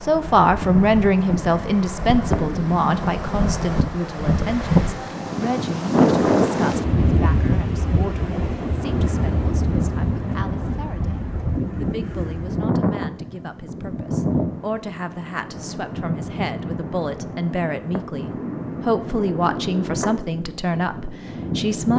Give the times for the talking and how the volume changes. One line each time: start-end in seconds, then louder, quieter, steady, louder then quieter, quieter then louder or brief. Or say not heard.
0.0-21.9 quieter then louder.